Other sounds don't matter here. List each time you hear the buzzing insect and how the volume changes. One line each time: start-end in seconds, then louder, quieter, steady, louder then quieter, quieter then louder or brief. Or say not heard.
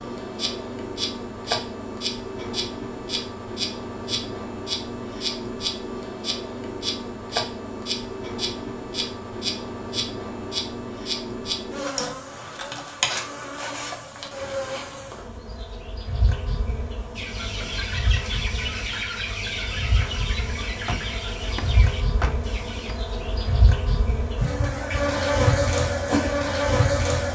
0.0-27.3 quieter then louder.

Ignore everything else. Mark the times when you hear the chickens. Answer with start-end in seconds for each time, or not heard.
17.1-22.9.